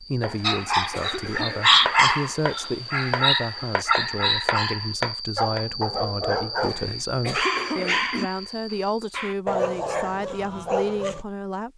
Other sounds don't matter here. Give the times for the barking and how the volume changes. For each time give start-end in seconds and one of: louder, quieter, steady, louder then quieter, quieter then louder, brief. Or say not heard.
0.4-11.2 quieter.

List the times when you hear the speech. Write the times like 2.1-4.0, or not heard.
0.0-11.7.